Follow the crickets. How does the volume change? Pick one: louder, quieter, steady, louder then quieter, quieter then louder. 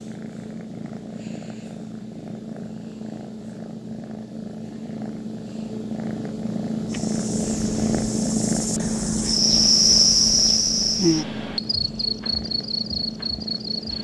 louder then quieter.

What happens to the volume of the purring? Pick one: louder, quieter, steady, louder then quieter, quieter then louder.
louder then quieter.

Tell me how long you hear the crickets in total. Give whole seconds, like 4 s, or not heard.
7 s.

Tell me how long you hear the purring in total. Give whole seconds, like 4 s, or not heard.
14 s.